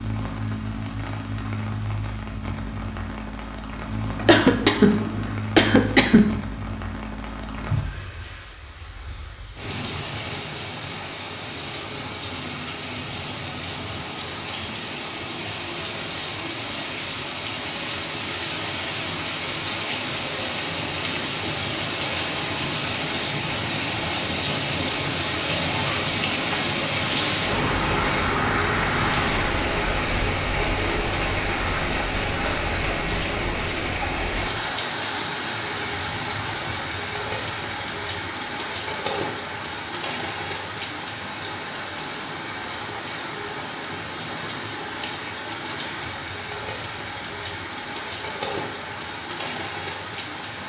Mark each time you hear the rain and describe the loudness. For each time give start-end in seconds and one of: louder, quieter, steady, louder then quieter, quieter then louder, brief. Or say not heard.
0.0-50.6 louder then quieter.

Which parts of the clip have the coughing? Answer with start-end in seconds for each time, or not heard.
4.2-6.3.